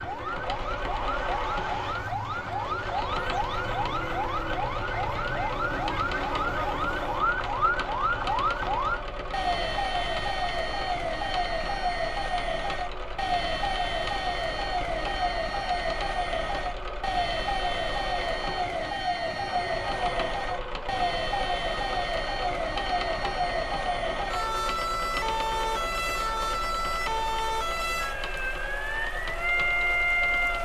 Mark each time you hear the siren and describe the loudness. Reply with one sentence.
You can hear the siren from 0.0 to 30.6 s, at a steady volume.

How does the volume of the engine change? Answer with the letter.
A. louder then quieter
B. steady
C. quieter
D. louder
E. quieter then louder
B.